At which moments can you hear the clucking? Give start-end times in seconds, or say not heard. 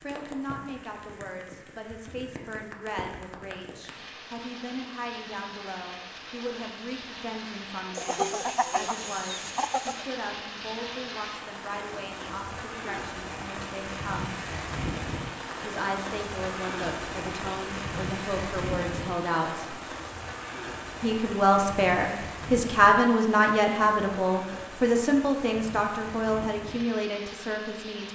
8.0-10.1.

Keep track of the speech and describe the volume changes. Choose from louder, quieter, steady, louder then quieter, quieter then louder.
louder.